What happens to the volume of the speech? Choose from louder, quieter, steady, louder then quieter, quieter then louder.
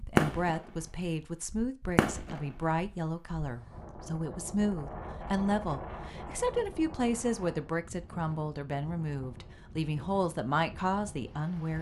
steady.